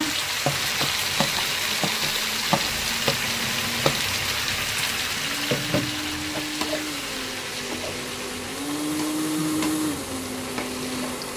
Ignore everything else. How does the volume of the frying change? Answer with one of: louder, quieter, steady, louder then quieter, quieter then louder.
quieter.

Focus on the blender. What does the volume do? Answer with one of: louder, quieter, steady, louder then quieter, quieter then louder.
louder.